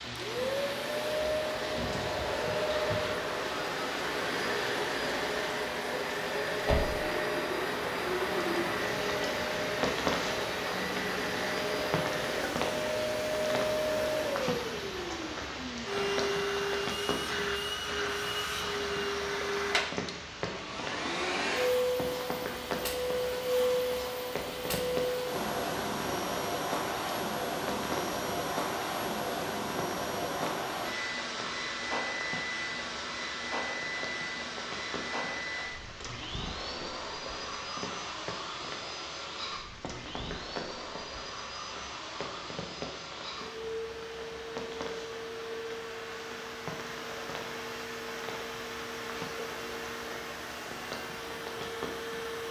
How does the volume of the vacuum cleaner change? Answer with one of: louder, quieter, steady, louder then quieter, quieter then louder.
quieter.